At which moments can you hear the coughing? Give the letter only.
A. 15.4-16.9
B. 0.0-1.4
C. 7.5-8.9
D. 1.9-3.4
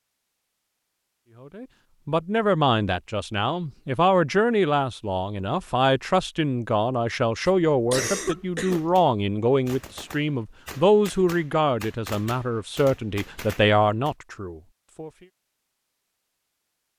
C.